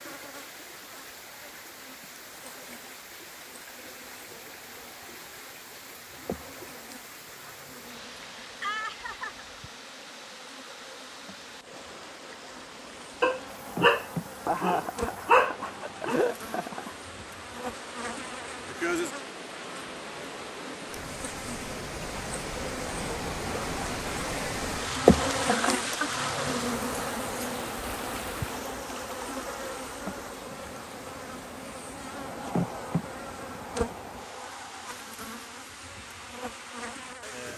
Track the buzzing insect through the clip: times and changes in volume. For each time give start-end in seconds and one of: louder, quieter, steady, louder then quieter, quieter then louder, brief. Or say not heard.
0.0-37.5 louder then quieter.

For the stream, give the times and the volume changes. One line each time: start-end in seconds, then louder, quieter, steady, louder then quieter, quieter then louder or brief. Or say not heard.
0.0-37.5 louder then quieter.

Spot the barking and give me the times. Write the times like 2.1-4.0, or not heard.
13.2-16.1.